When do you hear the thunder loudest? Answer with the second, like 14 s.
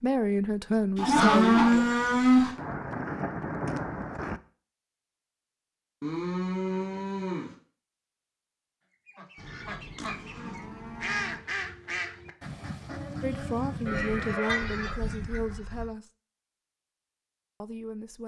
4 s.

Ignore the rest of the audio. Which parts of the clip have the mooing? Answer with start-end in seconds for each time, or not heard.
0.9-2.5, 6.0-7.5, 9.3-11.4, 13.8-15.8.